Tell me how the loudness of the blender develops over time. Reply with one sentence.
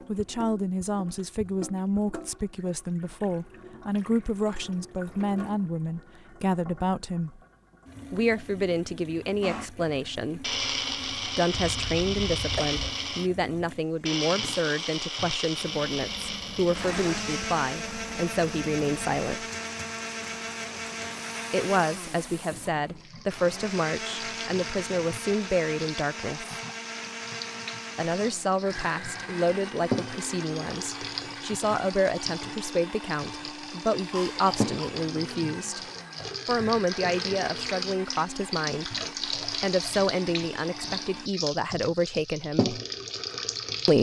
The loudness of the blender goes down.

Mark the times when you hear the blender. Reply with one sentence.
The blender can be heard from 9.4 to 41.3 s.